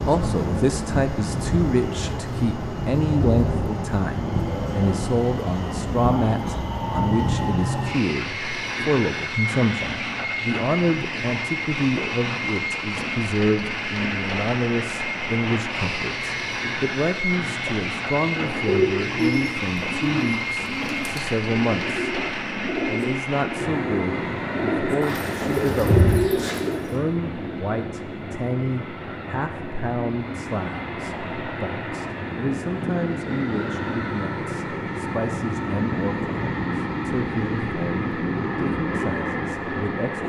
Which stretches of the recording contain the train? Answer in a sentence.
The train can be heard from 0.0 to 40.2 s.